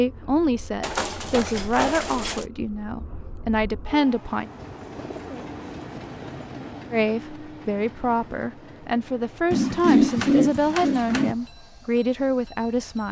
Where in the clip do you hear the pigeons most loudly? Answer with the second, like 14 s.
10 s.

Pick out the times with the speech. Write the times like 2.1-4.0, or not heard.
0.0-4.5, 6.9-13.0.